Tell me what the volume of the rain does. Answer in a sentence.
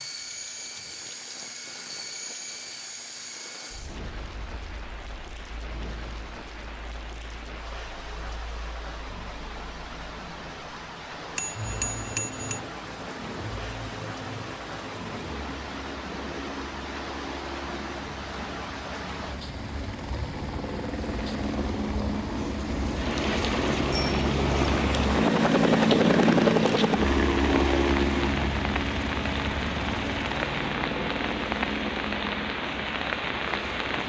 The volume of the rain goes up.